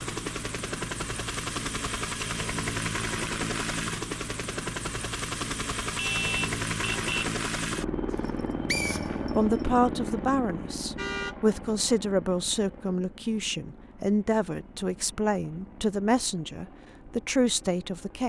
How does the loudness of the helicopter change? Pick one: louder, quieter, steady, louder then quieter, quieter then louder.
quieter.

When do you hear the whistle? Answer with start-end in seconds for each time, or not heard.
8.2-9.3.